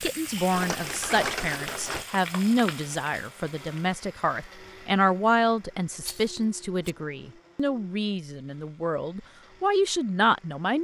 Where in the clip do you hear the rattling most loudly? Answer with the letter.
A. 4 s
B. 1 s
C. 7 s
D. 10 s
B.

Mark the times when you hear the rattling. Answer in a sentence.
You can hear the rattling from 0.5 to 2.0 s and from 6.0 to 7.0 s.